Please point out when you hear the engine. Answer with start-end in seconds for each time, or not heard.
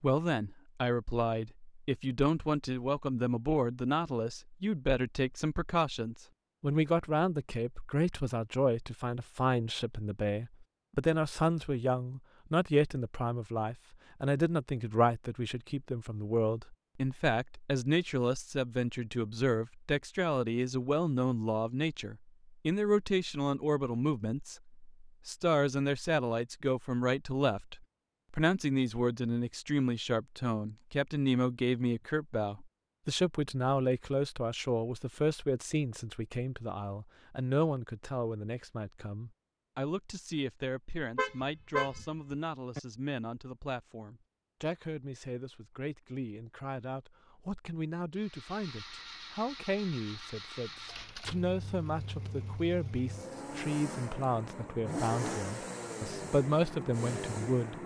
48.1-57.8.